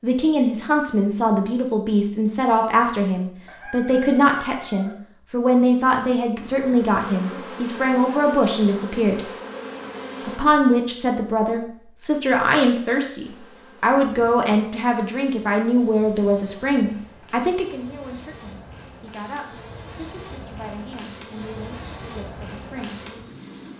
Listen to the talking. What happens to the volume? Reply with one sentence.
The volume of the talking goes down.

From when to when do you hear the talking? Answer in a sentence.
The talking can be heard from 0.0 to 9.2 s and from 10.2 to 22.9 s.